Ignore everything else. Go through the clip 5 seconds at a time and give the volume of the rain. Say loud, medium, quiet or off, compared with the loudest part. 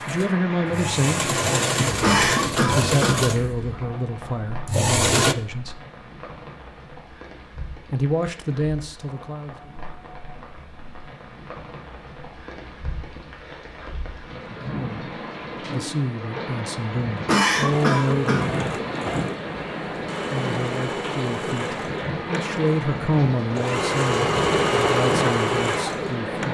medium, quiet, medium, loud, loud, loud.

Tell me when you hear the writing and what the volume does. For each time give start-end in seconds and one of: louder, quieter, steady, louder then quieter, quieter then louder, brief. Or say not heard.
not heard.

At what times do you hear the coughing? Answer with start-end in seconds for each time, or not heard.
2.0-3.3, 17.2-18.6.